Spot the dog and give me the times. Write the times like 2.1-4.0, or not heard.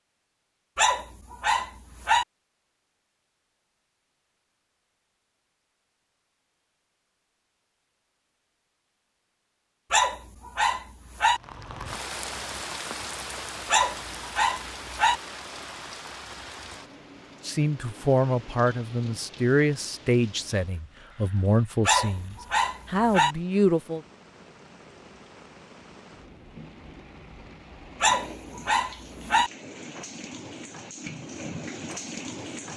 0.8-2.2, 9.9-11.4, 13.7-15.2, 21.9-23.4, 28.0-29.5.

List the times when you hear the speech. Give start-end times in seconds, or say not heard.
17.4-24.0.